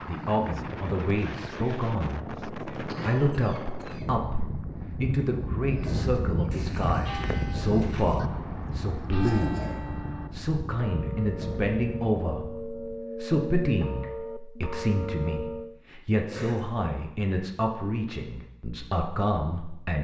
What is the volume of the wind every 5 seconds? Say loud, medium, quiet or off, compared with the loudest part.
loud, loud, medium, off.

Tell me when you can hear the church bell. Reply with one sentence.
You can hear the church bell from 5.7 to 15.8 s.